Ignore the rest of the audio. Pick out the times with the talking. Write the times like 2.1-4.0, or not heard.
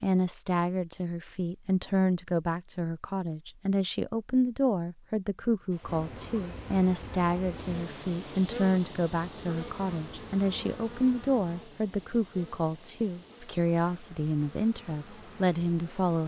0.0-16.2.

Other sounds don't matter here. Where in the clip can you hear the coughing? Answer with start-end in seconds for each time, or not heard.
not heard.